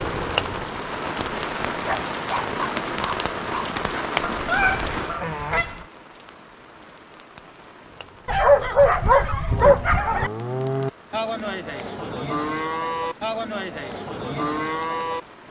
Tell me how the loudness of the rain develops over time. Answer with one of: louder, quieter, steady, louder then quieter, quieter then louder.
quieter.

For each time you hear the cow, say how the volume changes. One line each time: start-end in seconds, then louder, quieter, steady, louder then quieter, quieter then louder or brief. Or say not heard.
9.4-15.2 steady.